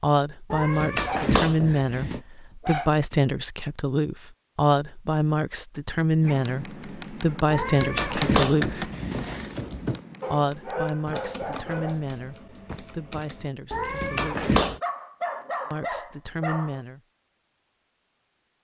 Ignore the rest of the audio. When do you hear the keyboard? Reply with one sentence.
The keyboard can be heard from 6.2 to 13.5 s.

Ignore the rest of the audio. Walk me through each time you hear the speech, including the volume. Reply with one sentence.
You can hear the speech from 0.0 to 8.9 s, at a steady volume; from 10.3 to 14.5 s, getting quieter; and briefly from 15.7 to 17.0 s.